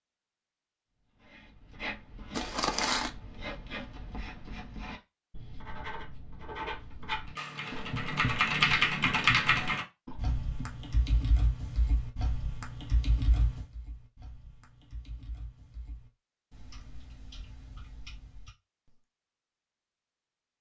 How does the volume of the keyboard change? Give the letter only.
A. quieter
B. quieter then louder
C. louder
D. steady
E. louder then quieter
A.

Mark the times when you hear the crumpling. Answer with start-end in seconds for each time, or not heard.
2.3-3.1.